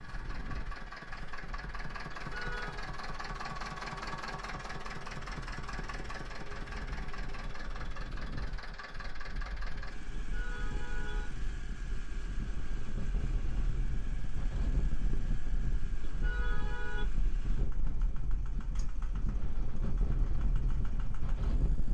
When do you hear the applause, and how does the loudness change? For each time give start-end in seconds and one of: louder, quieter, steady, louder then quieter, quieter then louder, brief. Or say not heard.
not heard.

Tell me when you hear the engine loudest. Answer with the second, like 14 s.
4 s.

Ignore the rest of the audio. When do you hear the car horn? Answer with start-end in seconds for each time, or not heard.
2.1-2.9, 10.1-11.3, 16.0-17.1.